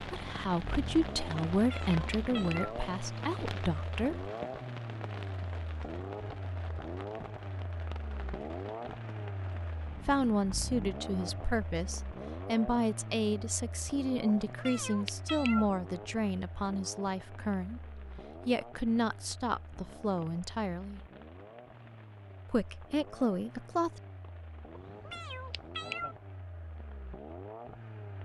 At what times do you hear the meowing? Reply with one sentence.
The meowing can be heard from 1.6 to 2.8 s, from 14.4 to 15.7 s and from 24.7 to 26.1 s.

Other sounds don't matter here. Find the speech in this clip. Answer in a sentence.
The speech can be heard from 0.0 to 4.3 s, from 10.1 to 21.0 s and from 22.5 to 24.0 s.